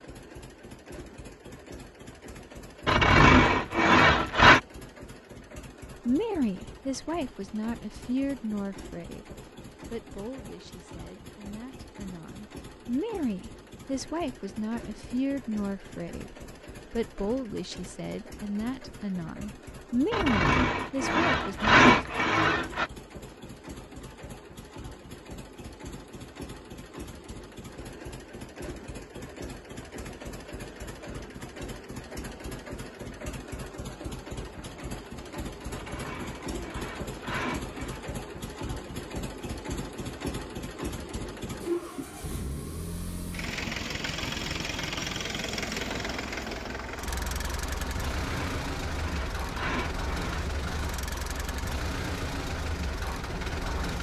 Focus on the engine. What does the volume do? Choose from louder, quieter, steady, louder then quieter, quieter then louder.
louder.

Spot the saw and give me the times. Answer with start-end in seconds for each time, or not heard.
2.9-4.6, 20.1-22.9, 35.7-38.0, 48.2-50.5.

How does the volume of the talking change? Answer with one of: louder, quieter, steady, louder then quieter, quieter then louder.
quieter then louder.